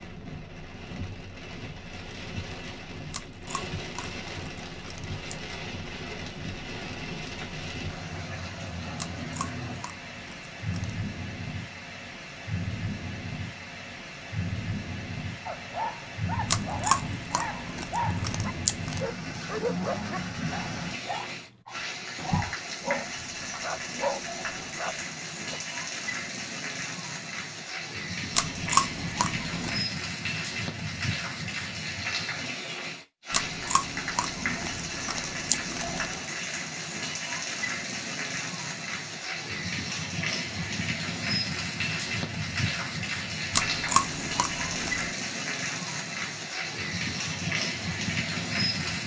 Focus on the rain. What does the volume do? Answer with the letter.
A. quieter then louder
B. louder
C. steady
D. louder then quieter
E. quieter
B.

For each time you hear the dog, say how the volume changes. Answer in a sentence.
You can hear the dog from 15.4 to 25.6 s, at a steady volume.